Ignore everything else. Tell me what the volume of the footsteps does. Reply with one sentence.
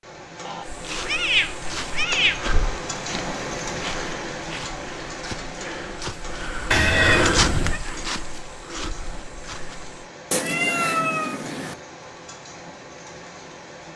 The volume of the footsteps goes up, then down.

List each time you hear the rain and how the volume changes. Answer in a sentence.
The rain can be heard from 0.0 to 13.9 s, getting quieter.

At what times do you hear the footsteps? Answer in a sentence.
The footsteps can be heard from 0.7 to 10.1 s.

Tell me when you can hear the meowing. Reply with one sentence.
The meowing can be heard from 0.5 to 2.4 s, from 6.7 to 7.8 s and from 10.3 to 11.8 s.